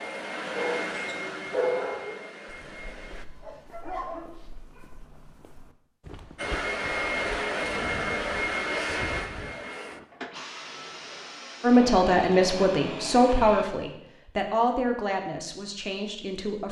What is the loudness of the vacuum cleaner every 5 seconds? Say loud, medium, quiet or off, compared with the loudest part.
medium, loud, medium, off.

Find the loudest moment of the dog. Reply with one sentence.
The volume of the dog peaks at 2 seconds.